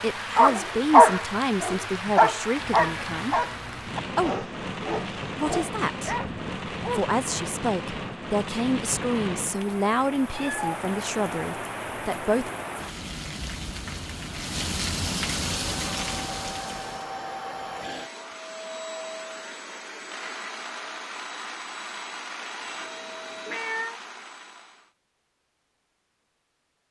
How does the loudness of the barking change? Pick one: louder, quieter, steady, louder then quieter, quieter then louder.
quieter.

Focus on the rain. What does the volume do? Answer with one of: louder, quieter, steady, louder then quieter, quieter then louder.
steady.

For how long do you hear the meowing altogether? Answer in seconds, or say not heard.
3 s.